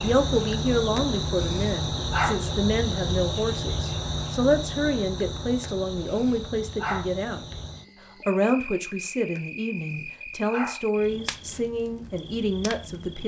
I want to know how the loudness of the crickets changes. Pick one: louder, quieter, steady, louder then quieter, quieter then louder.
quieter.